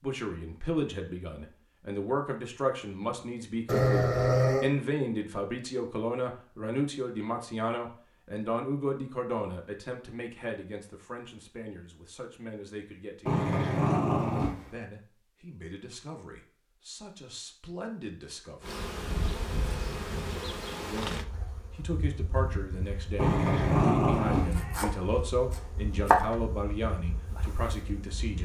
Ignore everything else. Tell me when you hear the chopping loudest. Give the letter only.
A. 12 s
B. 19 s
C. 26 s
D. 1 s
C.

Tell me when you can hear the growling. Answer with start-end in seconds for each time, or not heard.
3.6-4.7, 13.2-14.7, 23.1-24.6.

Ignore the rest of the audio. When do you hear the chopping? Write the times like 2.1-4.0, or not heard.
24.4-26.2.